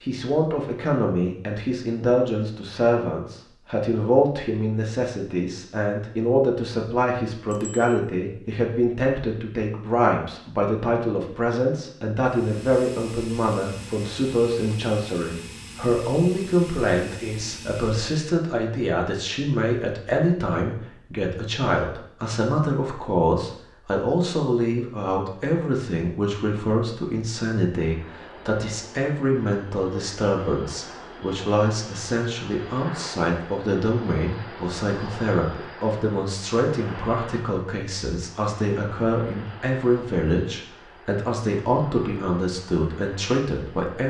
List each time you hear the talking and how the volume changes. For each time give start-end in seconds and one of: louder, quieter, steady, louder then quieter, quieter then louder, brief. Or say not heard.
0.0-44.0 steady.